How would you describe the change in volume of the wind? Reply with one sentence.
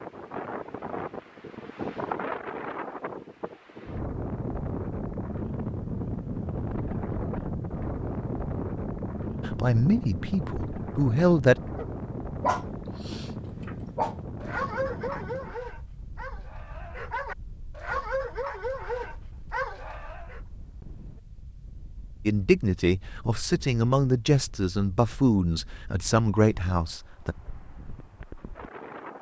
The loudness of the wind goes down.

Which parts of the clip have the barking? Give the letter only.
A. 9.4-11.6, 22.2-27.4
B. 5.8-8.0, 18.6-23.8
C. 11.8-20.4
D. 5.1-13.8
C.